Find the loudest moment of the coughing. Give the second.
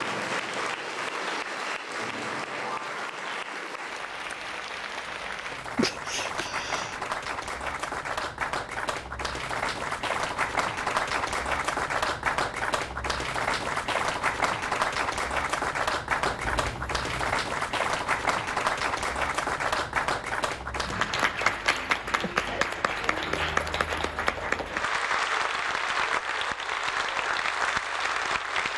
6 s.